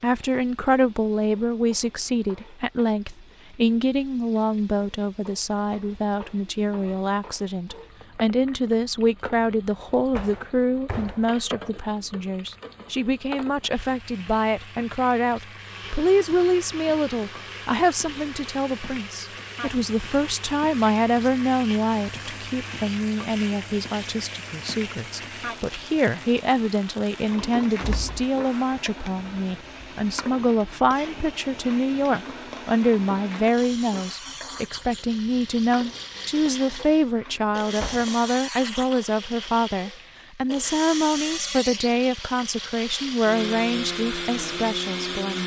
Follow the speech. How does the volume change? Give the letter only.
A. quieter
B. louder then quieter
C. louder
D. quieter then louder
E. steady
E.